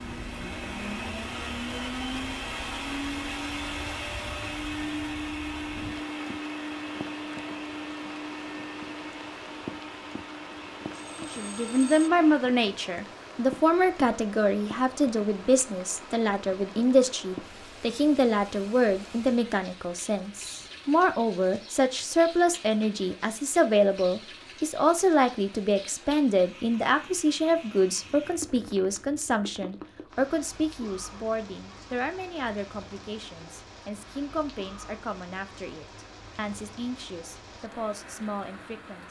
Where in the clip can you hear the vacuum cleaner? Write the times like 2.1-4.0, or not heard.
0.0-12.4.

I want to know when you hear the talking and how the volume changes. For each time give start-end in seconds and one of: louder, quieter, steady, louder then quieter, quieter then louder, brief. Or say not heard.
11.2-39.0 quieter.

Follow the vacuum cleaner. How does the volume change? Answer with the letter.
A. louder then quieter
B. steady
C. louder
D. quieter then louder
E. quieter
E.